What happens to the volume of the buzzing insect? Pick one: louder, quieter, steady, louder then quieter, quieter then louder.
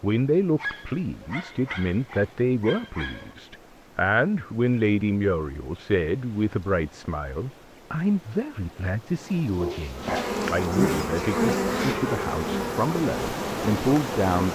quieter.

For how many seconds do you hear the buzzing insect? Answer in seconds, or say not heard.
4 s.